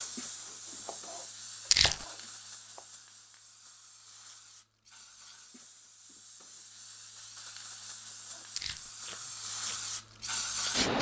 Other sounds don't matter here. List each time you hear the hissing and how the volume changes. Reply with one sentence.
You can hear the hissing from 0.0 to 10.9 s, getting quieter then louder.